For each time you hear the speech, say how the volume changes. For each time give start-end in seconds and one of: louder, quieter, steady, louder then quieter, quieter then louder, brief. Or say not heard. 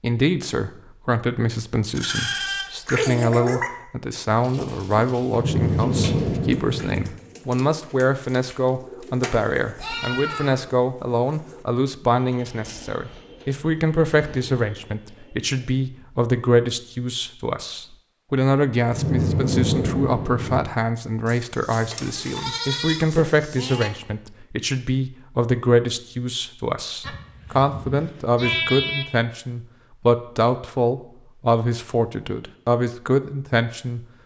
0.0-34.0 steady.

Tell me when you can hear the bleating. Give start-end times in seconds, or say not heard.
1.9-3.7, 9.8-10.6, 21.2-23.9, 27.0-29.1.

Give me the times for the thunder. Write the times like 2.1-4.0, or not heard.
5.3-7.0, 18.9-20.6.